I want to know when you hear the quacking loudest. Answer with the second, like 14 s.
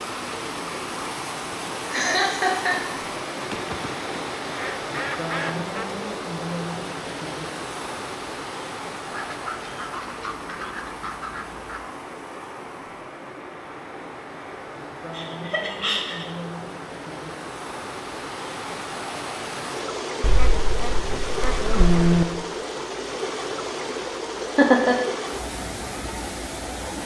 22 s.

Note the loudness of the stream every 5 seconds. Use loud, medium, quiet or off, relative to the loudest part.
loud, loud, medium, loud, loud, loud.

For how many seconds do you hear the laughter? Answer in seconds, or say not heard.
3 s.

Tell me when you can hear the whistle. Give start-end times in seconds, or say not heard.
not heard.